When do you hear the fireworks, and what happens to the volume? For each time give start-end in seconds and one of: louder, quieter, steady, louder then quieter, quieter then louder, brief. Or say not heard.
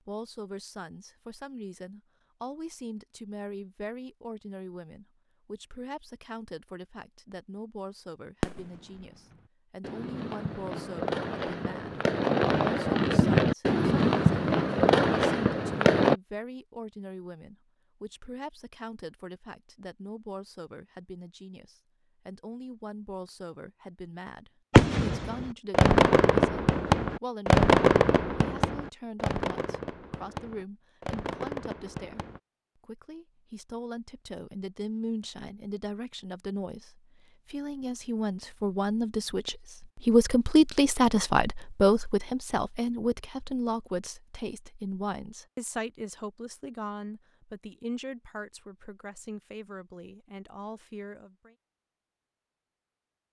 8.4-16.1 louder
24.7-32.4 quieter.